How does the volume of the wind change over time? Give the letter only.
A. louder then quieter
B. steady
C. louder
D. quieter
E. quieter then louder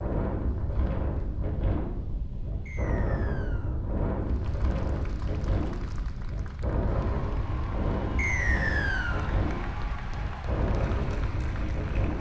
B.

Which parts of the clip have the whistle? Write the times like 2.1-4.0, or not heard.
2.6-3.8, 8.2-9.3.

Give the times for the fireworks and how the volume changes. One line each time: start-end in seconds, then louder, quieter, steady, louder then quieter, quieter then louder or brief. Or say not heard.
not heard.